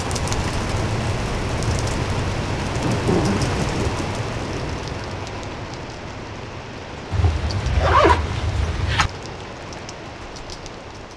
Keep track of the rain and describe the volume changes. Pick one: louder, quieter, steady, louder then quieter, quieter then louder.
quieter.